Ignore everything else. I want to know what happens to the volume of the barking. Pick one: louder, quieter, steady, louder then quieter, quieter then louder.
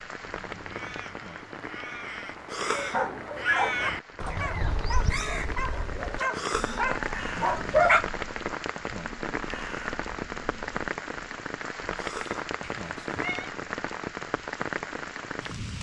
quieter then louder.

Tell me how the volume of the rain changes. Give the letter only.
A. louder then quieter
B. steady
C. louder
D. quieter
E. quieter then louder
C.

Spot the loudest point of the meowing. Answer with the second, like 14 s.
13 s.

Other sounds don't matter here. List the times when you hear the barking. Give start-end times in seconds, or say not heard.
2.7-8.1.